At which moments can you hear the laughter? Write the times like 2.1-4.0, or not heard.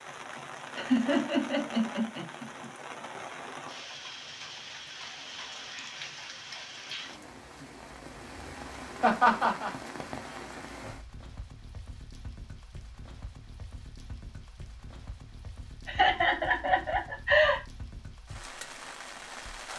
0.8-2.7, 9.0-9.7, 15.8-17.6.